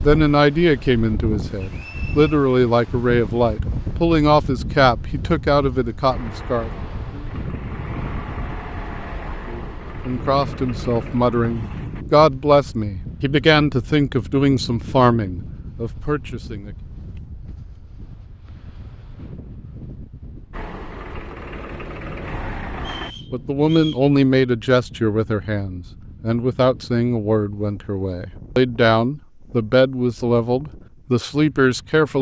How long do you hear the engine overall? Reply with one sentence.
The engine can be heard for 9 seconds in total.